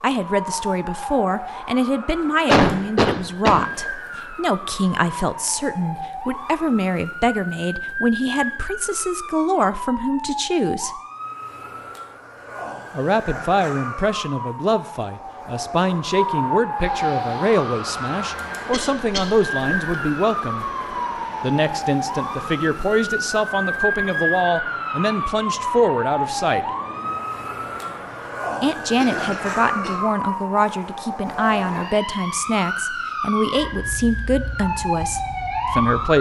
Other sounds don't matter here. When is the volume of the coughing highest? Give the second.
3 s.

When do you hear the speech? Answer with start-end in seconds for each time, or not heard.
0.0-10.9, 12.9-20.6, 21.4-26.7, 28.6-36.1.